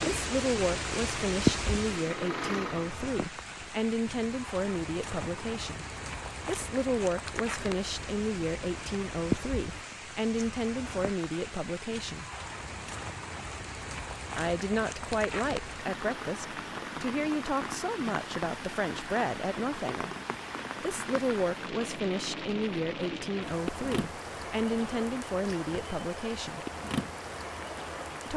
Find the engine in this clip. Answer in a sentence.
You can hear the engine from 0.0 to 3.1 s.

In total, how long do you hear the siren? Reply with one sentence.
You can't hear the siren here.